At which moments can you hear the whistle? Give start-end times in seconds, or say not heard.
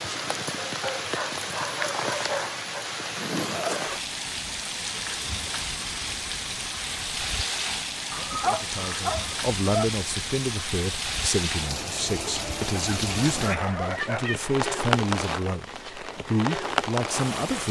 not heard.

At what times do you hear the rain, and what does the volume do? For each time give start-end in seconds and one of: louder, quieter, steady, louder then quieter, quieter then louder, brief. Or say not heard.
0.0-17.6 steady.